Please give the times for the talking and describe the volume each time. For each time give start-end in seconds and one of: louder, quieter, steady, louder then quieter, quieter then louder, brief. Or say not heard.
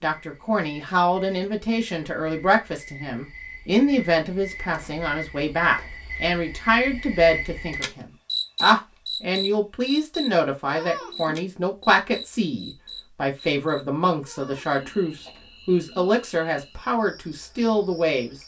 0.0-18.4 steady.